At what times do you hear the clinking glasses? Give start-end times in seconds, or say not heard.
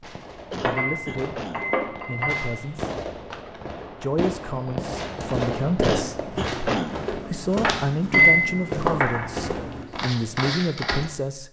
0.6-2.5, 7.6-9.2.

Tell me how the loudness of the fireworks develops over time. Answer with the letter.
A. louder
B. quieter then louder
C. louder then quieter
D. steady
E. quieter
A.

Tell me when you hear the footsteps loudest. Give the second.
9 s.